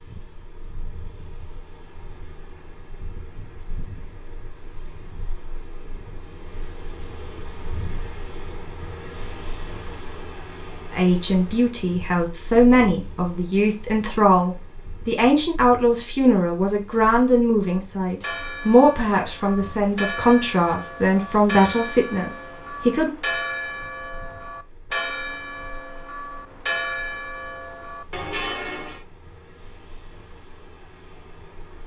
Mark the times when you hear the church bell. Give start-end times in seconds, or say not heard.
17.6-29.1.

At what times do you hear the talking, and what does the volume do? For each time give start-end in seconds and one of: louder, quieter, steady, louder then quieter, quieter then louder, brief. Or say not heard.
10.9-23.1 steady.